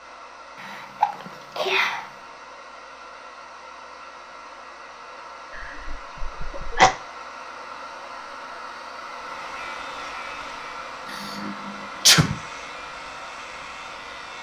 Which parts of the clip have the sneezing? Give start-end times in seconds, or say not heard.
0.6-2.0, 5.5-6.9, 11.1-12.3.